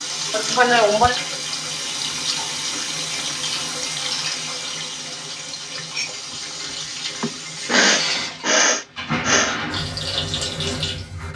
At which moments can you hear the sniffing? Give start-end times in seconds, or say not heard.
0.3-1.1, 7.2-9.6.